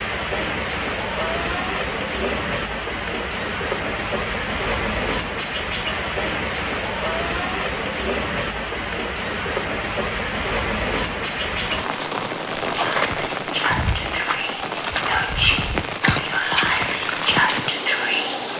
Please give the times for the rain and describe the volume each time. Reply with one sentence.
You can hear the rain from 0.0 to 18.5 s, at a steady volume.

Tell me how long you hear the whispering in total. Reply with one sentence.
The whispering can be heard for 6 seconds in total.